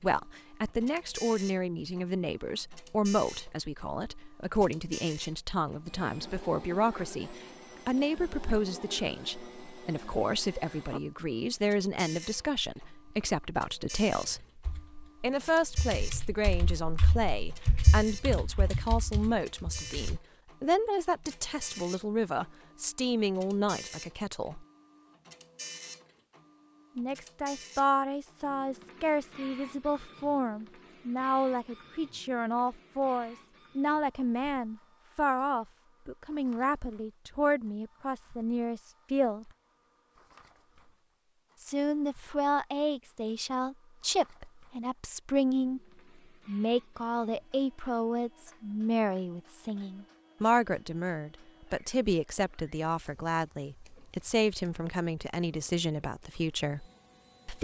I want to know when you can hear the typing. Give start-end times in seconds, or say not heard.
14.2-20.2.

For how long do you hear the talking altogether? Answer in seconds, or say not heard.
51 s.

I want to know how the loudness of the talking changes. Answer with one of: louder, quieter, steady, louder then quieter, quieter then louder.
steady.